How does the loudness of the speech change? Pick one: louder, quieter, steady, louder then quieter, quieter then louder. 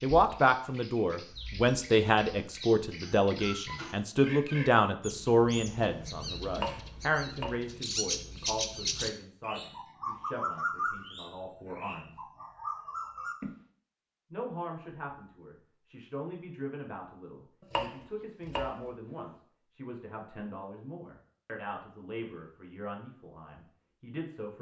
quieter.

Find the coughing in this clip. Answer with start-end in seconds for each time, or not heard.
not heard.